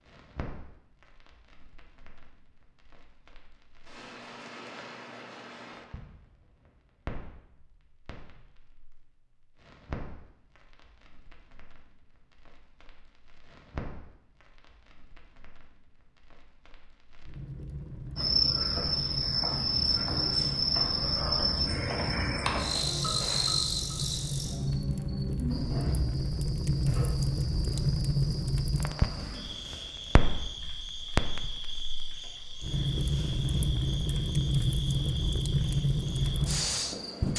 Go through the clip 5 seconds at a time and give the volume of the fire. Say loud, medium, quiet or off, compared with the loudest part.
quiet, quiet, quiet, quiet, medium, loud, loud, loud.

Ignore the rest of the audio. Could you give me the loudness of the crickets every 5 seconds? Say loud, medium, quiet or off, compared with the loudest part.
off, off, off, loud, loud, quiet, quiet, quiet.